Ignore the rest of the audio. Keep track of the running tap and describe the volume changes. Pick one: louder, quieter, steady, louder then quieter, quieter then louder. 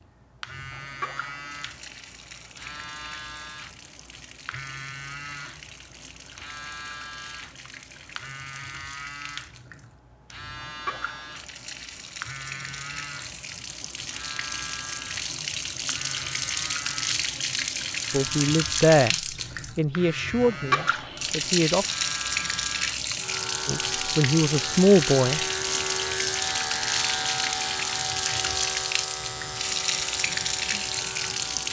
louder.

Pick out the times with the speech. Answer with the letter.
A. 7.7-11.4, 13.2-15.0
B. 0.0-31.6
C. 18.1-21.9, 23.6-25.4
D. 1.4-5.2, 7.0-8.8
C.